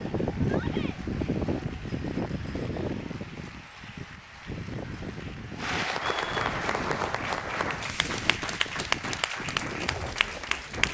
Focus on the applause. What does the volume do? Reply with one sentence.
The volume of the applause goes up.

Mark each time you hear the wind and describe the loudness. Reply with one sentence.
You can hear the wind from 0.0 to 10.8 s, getting quieter.